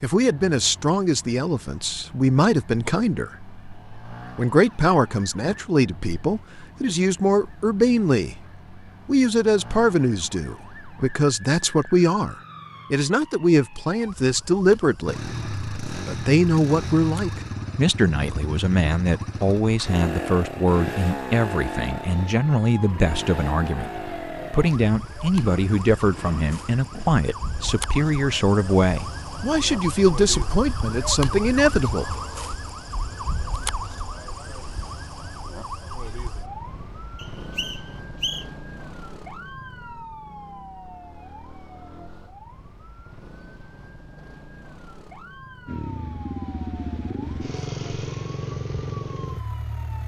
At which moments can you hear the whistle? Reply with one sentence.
You can hear the whistle from 37.1 to 38.5 s.